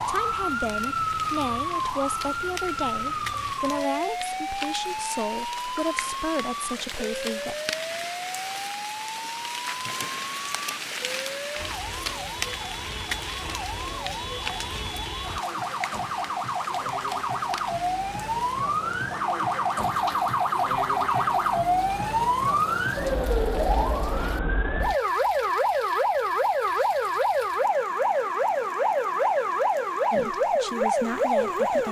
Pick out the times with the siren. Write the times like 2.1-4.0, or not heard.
0.0-31.8.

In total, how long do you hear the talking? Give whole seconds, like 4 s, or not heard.
9 s.